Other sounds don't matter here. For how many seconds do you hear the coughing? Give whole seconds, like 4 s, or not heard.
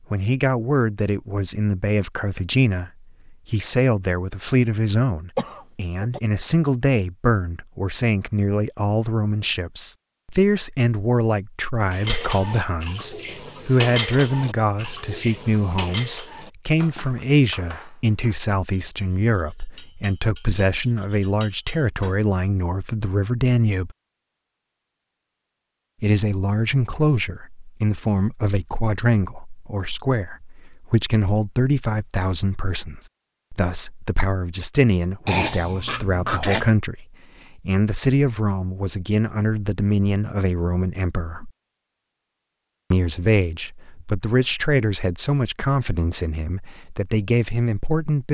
2 s.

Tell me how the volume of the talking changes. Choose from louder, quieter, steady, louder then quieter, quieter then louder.
steady.